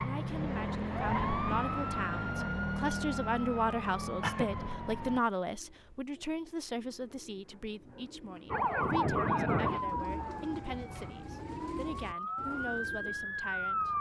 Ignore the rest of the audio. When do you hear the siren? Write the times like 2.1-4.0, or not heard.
0.0-5.2, 8.5-13.9.